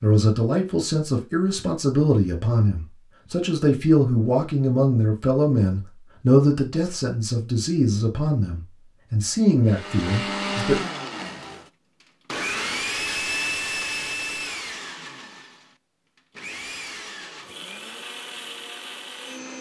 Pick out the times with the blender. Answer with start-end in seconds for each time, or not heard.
9.7-19.5.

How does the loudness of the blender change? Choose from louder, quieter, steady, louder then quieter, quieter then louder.
quieter.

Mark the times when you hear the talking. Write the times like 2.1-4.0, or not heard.
0.0-10.8.